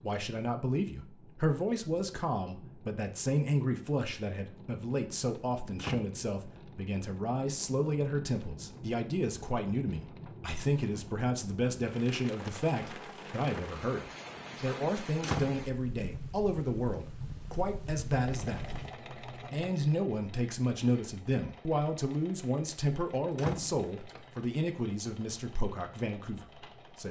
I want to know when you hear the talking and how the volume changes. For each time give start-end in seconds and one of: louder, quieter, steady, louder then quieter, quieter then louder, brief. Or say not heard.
0.0-27.0 steady.